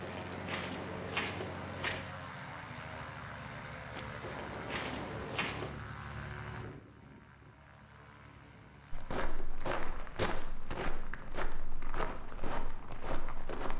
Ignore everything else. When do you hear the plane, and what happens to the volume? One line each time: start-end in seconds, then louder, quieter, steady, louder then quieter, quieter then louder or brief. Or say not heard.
0.0-13.7 quieter.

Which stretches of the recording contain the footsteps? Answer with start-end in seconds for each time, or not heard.
0.0-2.0, 3.9-5.7, 8.9-13.7.